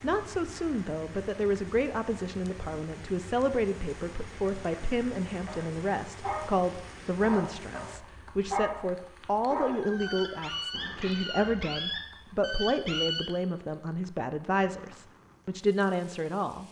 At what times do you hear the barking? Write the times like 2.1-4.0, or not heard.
5.5-13.2.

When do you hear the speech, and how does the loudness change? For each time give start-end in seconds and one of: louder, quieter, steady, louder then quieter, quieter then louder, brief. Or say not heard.
0.0-16.6 steady.